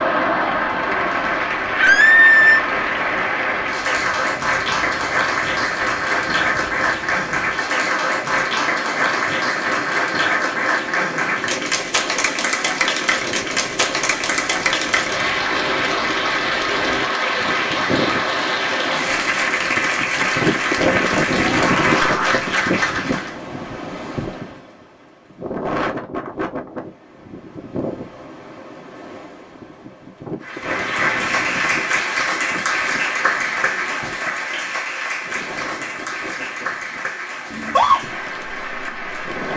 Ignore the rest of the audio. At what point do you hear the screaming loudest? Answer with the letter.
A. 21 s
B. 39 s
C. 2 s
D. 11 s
C.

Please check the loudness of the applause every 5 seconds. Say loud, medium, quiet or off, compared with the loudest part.
loud, loud, loud, loud, loud, off, loud, medium.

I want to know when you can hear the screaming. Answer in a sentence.
The screaming can be heard from 1.8 to 2.6 s, from 21.4 to 22.4 s and from 37.5 to 38.0 s.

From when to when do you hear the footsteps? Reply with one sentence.
You can't hear the footsteps here.